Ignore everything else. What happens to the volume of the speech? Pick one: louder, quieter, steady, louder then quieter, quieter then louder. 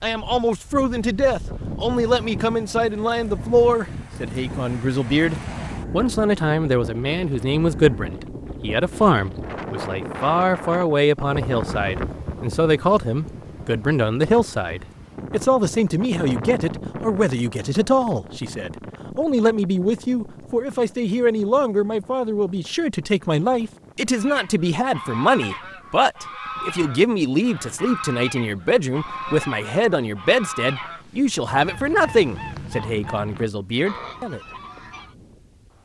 steady.